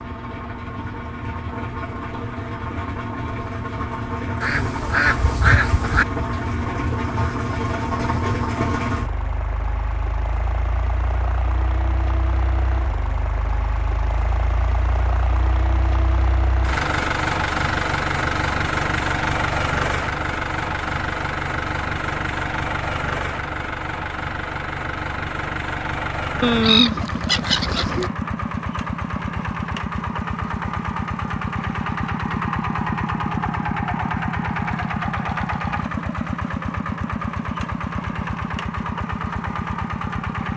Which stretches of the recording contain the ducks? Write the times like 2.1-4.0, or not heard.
4.4-6.0, 26.4-28.1.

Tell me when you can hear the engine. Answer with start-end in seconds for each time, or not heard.
0.0-40.5.